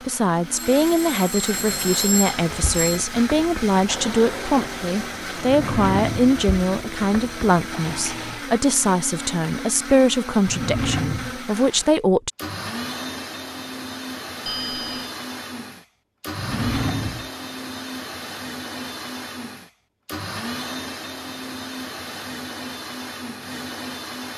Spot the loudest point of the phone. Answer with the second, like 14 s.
2 s.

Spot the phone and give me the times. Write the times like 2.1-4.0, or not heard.
0.8-3.0, 14.4-15.2.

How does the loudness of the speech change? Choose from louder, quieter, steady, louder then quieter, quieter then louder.
steady.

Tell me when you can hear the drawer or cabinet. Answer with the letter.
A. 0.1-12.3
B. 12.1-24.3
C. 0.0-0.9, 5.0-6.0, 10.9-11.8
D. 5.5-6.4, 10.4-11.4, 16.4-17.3
D.